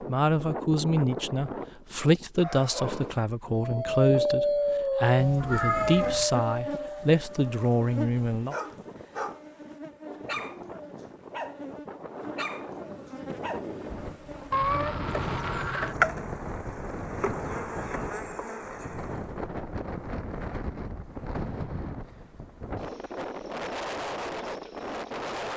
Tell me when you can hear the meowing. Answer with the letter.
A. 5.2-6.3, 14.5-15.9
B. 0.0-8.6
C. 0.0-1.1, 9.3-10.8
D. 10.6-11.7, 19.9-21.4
A.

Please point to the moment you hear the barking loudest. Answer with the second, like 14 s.
4 s.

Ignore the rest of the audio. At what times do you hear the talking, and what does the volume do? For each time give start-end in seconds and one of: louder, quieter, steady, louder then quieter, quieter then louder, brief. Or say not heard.
0.0-8.6 steady.